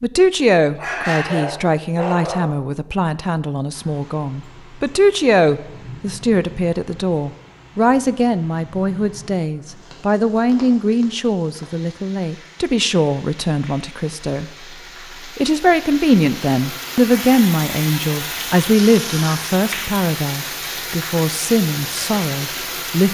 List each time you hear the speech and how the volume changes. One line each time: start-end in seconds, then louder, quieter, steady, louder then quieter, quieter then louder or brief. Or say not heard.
0.0-23.0 steady.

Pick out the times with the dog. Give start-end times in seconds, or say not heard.
0.8-2.5.